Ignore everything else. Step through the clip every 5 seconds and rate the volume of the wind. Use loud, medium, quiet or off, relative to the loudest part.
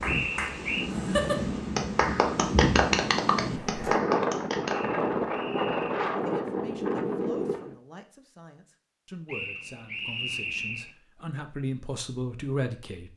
loud, loud, off.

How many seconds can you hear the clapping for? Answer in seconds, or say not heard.
5 s.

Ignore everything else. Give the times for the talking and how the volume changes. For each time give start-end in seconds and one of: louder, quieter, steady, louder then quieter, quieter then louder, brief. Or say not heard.
6.2-13.1 quieter then louder.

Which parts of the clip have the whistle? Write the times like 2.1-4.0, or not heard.
0.1-0.9, 4.7-6.0, 9.2-10.9.